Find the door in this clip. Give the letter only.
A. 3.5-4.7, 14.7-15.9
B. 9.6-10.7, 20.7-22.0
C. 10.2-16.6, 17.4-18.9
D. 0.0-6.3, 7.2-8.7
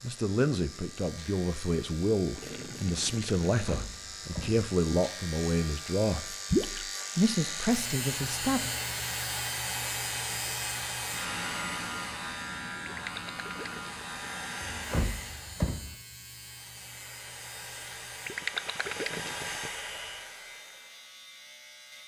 A.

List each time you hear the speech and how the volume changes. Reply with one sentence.
You can hear the speech from 0.0 to 6.3 s, at a steady volume; and briefly from 7.2 to 8.7 s.